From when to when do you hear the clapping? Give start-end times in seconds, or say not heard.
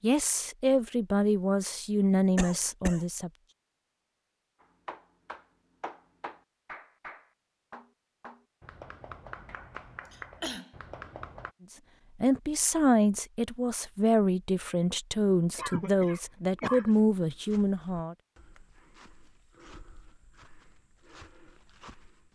4.6-11.6.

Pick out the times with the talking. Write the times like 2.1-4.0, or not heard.
0.0-3.3, 12.2-18.1.